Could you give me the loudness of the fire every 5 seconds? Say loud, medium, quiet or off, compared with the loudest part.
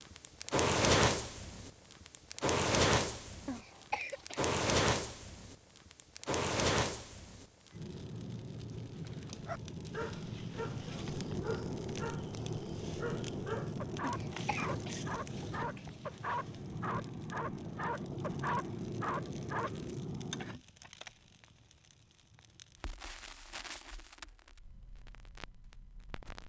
loud, medium, medium, medium, quiet, quiet.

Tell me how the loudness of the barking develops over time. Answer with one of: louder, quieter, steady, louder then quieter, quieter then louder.
louder.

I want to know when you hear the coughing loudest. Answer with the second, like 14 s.
4 s.